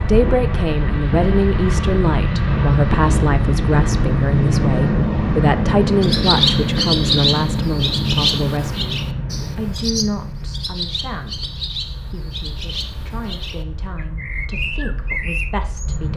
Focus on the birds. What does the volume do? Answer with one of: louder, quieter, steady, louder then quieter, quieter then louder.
quieter then louder.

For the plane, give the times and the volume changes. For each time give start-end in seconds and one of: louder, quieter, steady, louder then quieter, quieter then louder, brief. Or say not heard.
0.0-16.1 quieter.